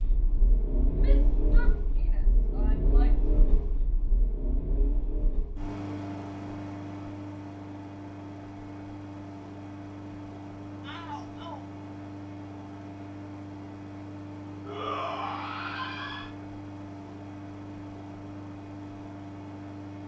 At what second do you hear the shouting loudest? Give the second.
15 s.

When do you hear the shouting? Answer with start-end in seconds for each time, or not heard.
0.9-3.4, 10.8-11.6, 14.7-16.3.